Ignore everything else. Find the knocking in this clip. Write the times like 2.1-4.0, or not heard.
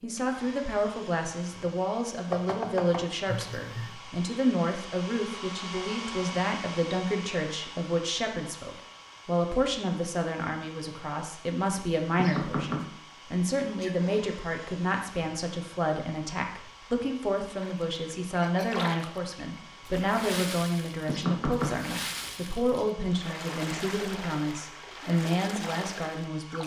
2.3-3.5, 12.2-12.8, 21.1-21.9.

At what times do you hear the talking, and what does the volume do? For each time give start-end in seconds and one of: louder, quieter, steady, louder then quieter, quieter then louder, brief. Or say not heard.
0.0-26.6 steady.